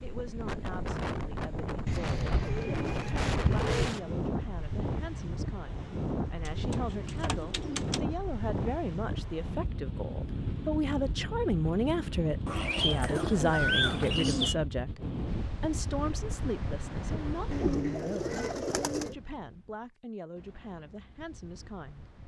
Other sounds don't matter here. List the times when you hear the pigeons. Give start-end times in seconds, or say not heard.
1.9-3.9, 6.5-8.0, 12.4-14.6, 17.5-19.1.